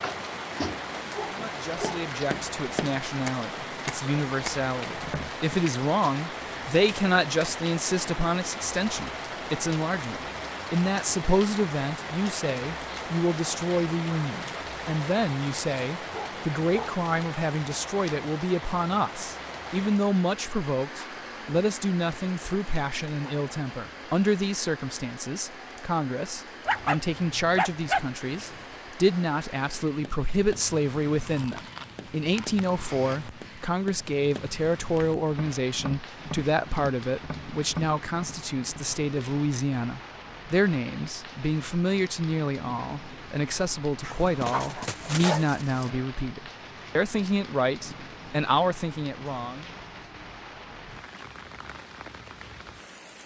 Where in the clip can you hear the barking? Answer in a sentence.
The barking can be heard from 1.1 to 2.3 s, from 16.1 to 16.9 s, from 26.6 to 28.6 s and from 44.0 to 45.9 s.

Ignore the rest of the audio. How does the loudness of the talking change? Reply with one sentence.
The loudness of the talking stays about the same.